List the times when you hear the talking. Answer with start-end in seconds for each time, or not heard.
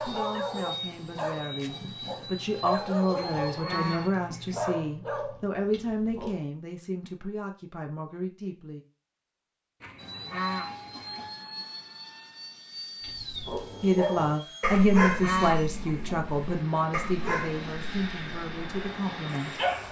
0.0-8.8, 13.8-19.8.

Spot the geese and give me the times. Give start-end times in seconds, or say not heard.
3.1-4.7, 9.8-11.3, 14.7-16.2.